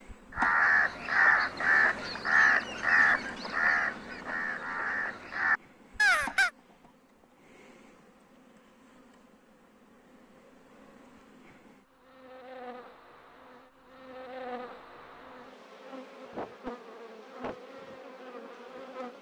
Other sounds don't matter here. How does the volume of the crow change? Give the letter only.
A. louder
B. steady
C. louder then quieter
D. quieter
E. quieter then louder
E.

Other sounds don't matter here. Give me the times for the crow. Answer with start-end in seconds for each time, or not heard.
0.3-6.5.